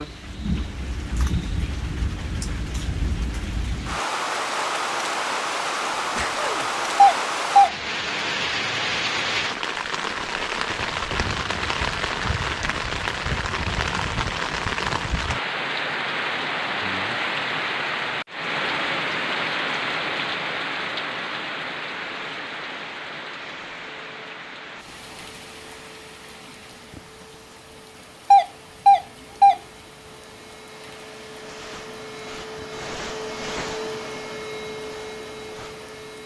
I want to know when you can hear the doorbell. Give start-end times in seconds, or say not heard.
7.0-7.7, 28.3-29.6.